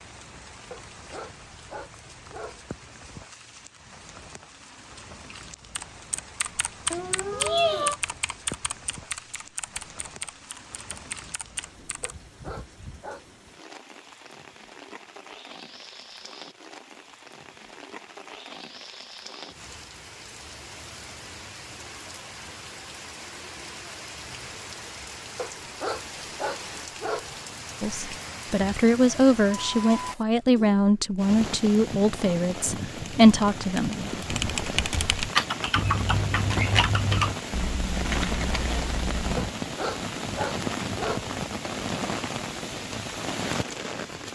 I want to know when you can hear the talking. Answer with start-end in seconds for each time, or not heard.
27.8-34.1.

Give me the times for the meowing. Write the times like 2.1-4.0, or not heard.
6.9-8.0, 35.8-37.4.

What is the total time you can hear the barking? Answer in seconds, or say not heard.
7 s.